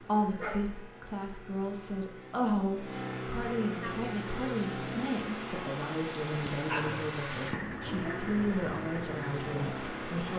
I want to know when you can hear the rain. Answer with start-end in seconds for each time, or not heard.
3.8-10.2.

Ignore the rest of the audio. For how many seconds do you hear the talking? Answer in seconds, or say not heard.
10 s.